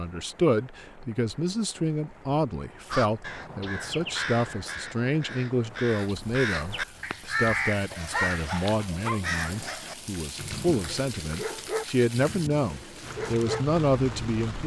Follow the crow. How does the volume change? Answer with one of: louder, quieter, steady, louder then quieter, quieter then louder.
quieter then louder.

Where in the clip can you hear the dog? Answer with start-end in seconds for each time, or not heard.
7.9-14.6.